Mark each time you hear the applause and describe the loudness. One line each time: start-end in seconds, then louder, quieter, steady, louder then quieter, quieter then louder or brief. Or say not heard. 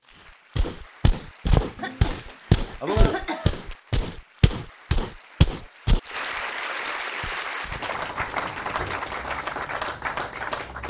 0.0-10.8 louder.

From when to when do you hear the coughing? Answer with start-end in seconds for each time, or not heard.
1.8-3.8, 8.4-9.1.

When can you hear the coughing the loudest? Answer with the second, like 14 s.
3 s.